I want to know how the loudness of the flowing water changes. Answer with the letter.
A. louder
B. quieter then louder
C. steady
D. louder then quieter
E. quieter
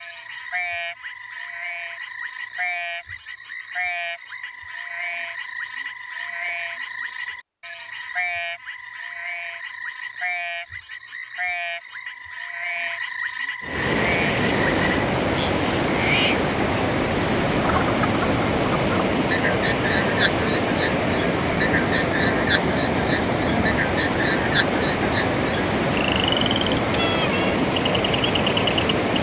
C.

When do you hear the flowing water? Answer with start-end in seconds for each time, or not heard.
13.6-29.1.